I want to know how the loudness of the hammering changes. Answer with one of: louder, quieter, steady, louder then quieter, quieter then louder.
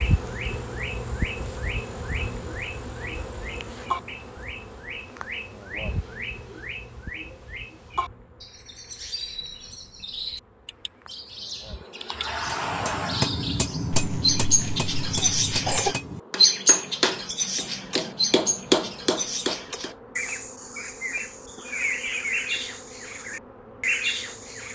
quieter then louder.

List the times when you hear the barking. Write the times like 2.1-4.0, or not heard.
not heard.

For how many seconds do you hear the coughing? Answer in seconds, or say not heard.
2 s.